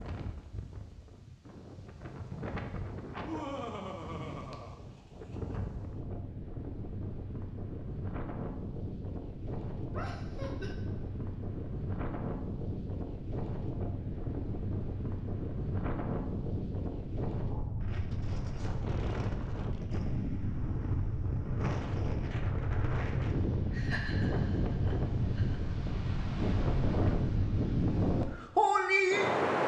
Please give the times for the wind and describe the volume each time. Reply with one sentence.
The wind can be heard from 0.0 to 29.6 s, getting louder.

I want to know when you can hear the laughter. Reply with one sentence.
The laughter can be heard from 3.1 to 4.8 s, from 9.9 to 10.8 s and from 23.7 to 25.6 s.